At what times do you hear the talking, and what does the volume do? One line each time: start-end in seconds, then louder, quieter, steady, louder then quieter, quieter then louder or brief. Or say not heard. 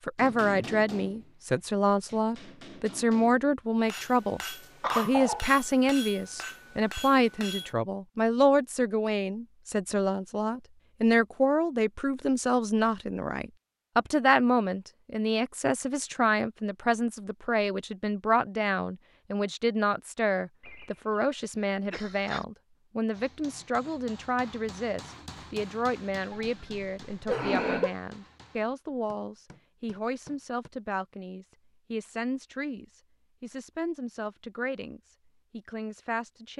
0.1-36.5 quieter.